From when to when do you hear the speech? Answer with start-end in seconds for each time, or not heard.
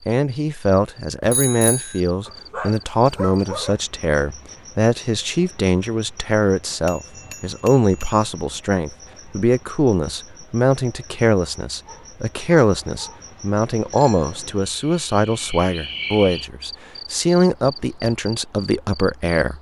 0.1-19.5.